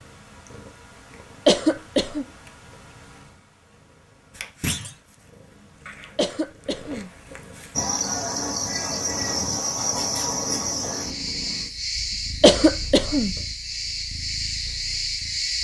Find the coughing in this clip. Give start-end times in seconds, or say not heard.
1.4-2.2, 6.2-7.1, 12.4-13.3.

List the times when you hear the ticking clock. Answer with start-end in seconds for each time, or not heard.
not heard.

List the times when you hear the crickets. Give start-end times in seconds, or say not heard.
7.7-15.5.